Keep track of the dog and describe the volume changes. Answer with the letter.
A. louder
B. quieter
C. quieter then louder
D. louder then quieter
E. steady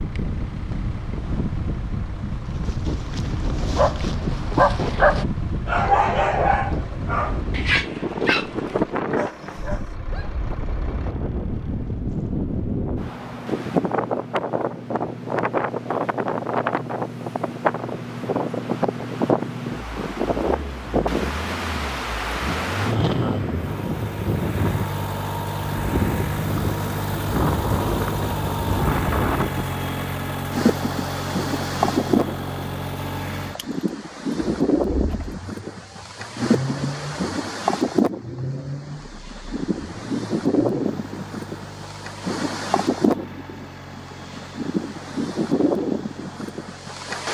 D.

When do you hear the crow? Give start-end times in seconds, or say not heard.
not heard.